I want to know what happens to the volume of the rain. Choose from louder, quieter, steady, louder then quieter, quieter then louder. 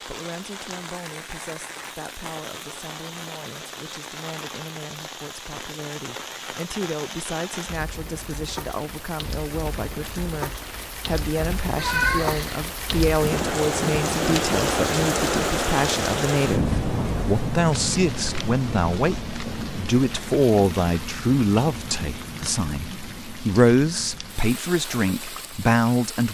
louder then quieter.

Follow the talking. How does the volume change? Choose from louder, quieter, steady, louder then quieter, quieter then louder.
louder.